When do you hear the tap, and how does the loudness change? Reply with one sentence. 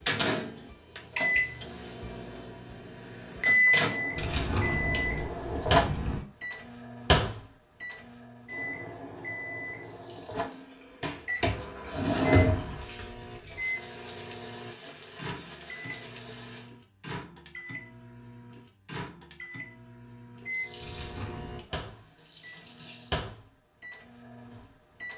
The tap can be heard from 9.4 to 16.7 s, getting quieter then louder; and briefly from 20.4 to 23.1 s.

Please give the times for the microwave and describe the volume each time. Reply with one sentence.
The microwave can be heard from 0.0 to 25.1 s, getting quieter.